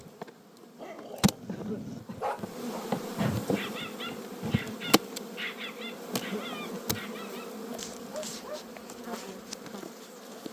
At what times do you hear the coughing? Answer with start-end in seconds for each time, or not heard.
1.4-2.2, 6.1-6.9.